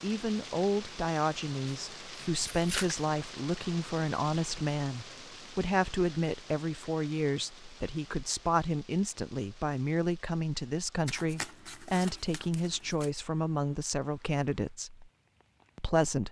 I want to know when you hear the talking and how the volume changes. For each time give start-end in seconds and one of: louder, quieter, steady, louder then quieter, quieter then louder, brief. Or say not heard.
0.0-15.1 steady
15.8-16.2 brief.